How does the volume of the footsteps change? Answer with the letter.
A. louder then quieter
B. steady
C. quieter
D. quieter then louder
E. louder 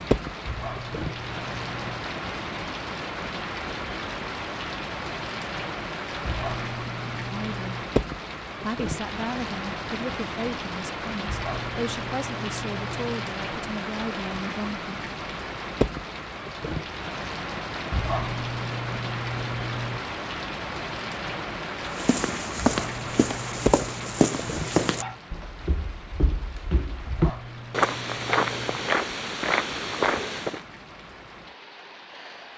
D.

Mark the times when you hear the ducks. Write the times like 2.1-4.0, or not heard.
not heard.